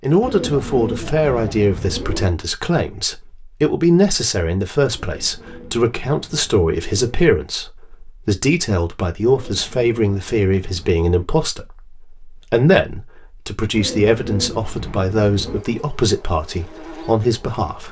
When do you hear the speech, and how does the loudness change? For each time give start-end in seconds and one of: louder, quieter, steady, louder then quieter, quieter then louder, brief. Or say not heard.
0.0-17.8 steady.